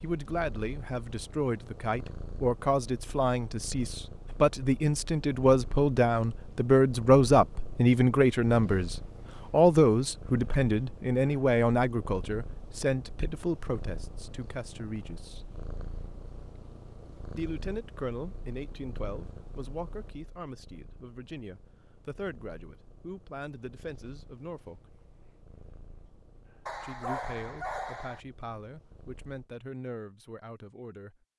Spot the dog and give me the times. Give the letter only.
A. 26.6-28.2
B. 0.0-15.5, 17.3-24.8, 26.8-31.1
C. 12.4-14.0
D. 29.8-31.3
A.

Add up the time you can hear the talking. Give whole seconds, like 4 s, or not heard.
27 s.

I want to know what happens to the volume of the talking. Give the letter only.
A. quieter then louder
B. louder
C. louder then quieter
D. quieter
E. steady
C.